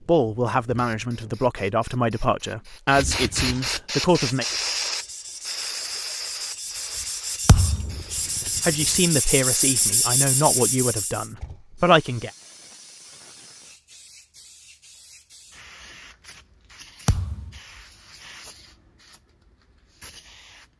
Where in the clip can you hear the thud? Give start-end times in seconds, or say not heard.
7.5-8.0, 17.1-17.6.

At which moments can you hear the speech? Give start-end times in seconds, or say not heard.
0.1-4.5, 8.7-12.3.